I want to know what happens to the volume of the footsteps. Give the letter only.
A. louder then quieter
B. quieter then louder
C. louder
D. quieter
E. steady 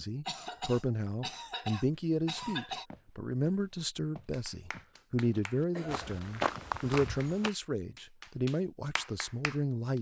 C.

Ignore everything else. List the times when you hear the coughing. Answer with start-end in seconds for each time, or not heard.
0.2-2.9, 5.7-6.7.